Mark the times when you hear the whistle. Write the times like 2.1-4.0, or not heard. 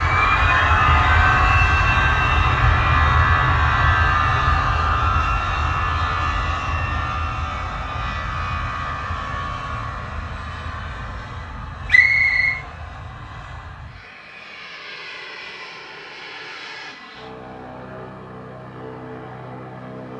11.8-12.6.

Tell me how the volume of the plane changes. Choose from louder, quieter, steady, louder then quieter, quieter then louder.
quieter.